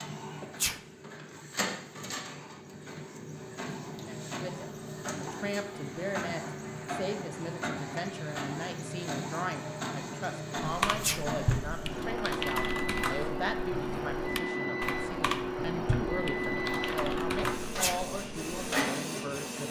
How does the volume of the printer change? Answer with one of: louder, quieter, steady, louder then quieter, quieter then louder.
louder.